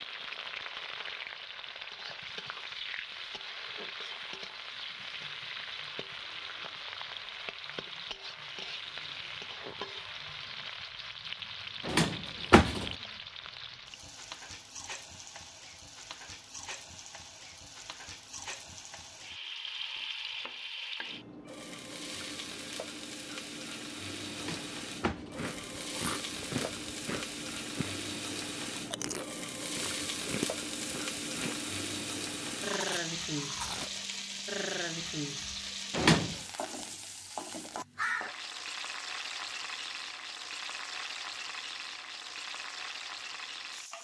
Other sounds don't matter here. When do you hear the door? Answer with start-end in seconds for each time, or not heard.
11.8-12.9, 24.4-25.4, 35.9-36.4.